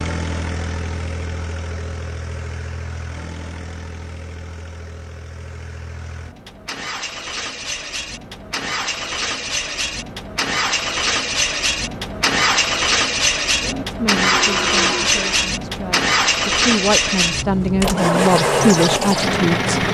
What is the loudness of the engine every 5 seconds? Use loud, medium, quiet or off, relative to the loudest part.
quiet, medium, loud, loud.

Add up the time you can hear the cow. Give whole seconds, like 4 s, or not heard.
2 s.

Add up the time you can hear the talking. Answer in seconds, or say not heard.
6 s.